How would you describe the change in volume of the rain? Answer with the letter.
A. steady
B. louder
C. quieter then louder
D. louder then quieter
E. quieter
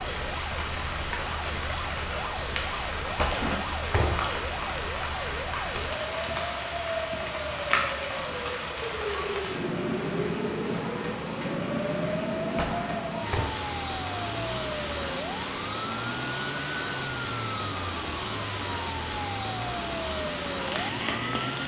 A.